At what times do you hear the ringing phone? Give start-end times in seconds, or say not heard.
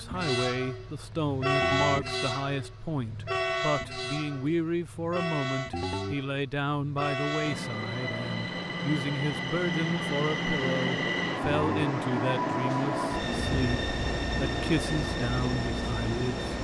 1.6-2.0, 5.7-6.2, 11.4-11.8.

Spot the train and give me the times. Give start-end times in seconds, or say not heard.
0.0-16.5.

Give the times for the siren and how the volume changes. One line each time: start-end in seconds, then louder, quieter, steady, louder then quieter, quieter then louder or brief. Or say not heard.
not heard.